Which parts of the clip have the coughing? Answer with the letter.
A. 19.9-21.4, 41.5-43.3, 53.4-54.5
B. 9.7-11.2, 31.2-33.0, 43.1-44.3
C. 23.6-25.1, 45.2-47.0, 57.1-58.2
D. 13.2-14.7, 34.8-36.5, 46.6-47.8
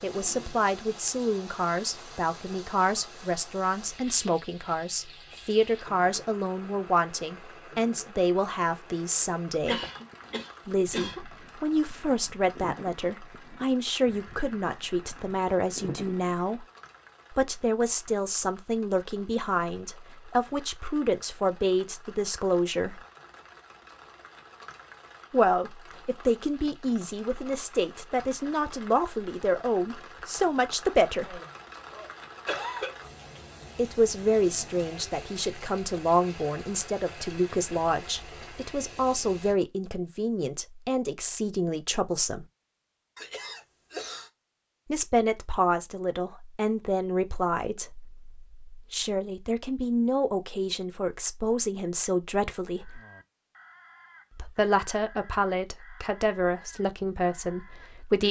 B.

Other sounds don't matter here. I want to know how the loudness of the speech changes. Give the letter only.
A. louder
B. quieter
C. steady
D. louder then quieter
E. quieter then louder
C.